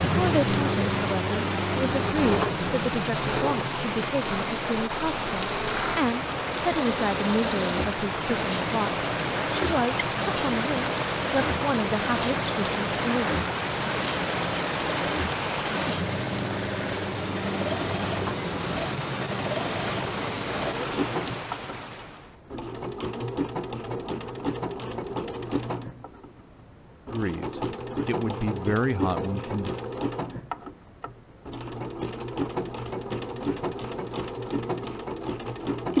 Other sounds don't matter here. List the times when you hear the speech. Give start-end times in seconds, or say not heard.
0.0-13.3, 27.1-29.7.